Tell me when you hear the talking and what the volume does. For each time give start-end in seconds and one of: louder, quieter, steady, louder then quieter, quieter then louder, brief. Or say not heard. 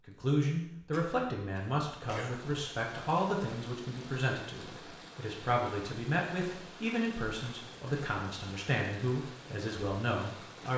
0.1-10.7 steady.